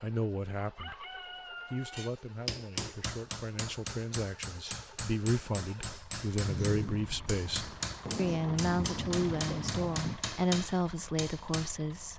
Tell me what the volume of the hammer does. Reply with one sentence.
The volume of the hammer stays about the same.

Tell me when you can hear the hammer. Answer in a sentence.
You can hear the hammer from 1.9 to 11.7 s.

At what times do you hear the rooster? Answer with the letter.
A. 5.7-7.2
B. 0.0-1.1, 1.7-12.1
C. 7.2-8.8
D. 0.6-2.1
D.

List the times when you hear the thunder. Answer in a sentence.
You can hear the thunder from 6.4 to 10.2 s.